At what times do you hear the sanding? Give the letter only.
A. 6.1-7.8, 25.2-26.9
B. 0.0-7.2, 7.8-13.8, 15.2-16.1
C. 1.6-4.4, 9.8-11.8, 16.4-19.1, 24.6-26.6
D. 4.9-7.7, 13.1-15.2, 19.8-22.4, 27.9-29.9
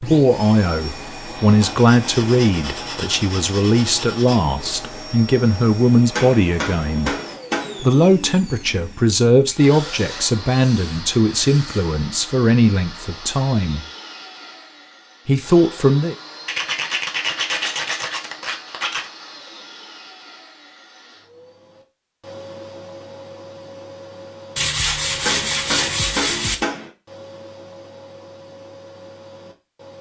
C.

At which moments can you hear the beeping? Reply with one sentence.
You can't hear the beeping here.